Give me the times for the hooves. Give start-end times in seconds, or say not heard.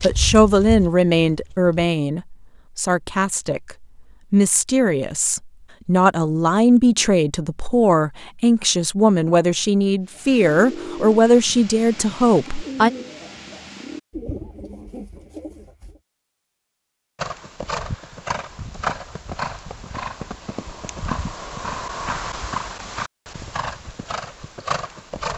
0.0-1.8, 17.1-25.3.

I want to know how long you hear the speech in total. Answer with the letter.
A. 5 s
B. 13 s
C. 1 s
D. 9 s
B.